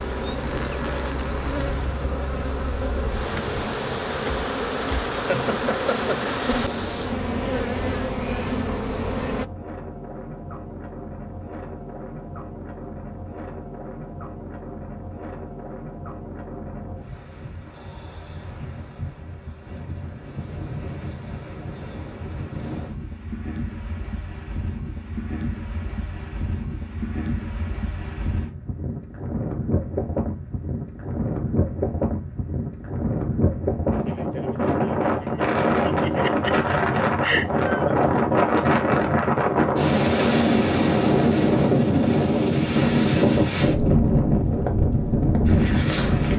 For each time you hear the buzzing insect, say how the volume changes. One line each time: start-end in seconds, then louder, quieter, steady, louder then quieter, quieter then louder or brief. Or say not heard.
0.0-9.4 steady.